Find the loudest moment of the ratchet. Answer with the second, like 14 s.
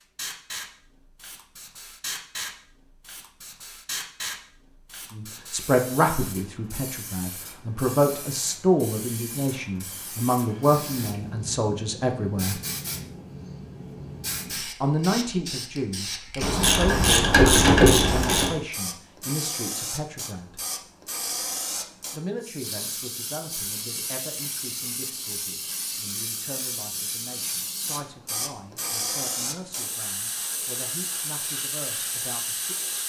18 s.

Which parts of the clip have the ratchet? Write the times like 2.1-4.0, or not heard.
16.4-18.6.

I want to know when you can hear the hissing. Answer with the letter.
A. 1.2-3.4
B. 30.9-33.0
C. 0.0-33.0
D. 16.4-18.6
C.